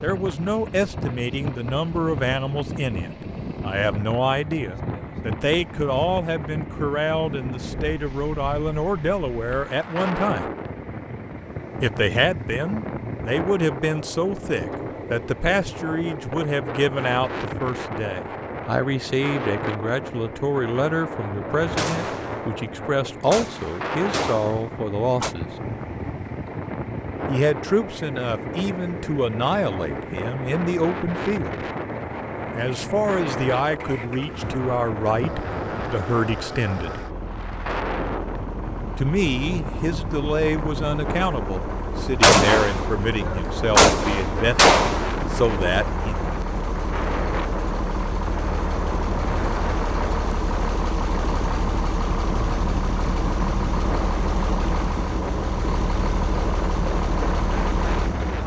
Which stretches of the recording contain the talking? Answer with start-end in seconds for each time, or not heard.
0.0-10.5, 11.8-25.5, 27.2-31.6, 32.5-37.0, 39.0-46.2.